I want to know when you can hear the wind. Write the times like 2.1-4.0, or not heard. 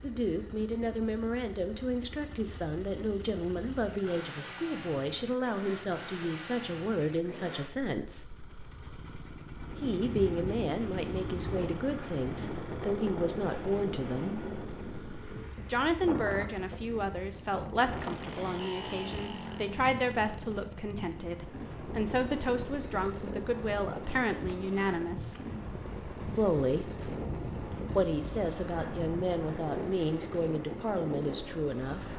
9.5-32.1.